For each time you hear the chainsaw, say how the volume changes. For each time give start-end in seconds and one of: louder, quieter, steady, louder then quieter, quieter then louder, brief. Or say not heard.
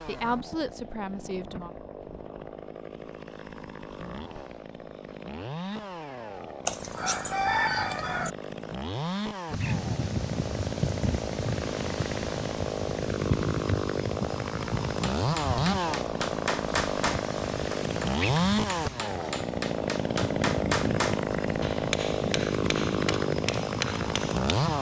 0.0-24.7 louder.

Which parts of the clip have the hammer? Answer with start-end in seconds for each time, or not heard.
15.0-24.7.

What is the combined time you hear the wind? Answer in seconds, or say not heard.
15 s.